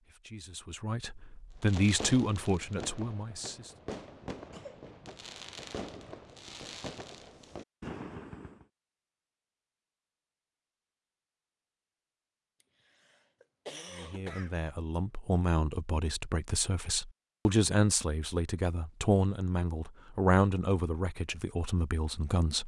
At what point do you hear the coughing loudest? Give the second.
14 s.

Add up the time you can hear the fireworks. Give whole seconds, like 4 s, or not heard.
7 s.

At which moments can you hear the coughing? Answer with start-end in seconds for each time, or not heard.
4.3-4.9, 12.6-14.6.